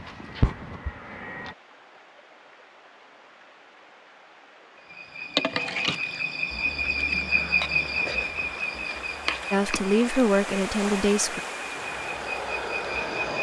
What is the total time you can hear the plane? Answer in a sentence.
The plane can be heard for 3 seconds in total.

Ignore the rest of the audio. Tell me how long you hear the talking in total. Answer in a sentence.
The talking can be heard for 2 seconds in total.